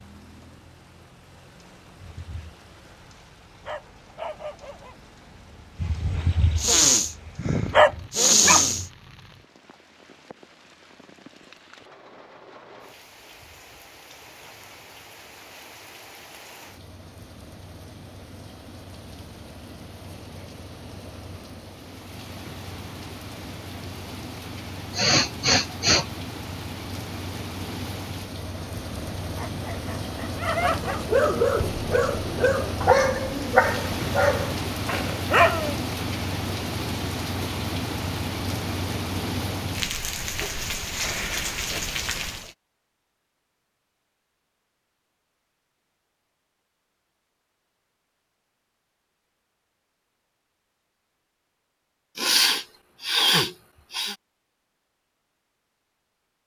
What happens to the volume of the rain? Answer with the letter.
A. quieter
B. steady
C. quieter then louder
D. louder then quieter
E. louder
E.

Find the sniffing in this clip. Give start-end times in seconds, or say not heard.
6.5-8.8, 24.9-26.1, 52.1-54.1.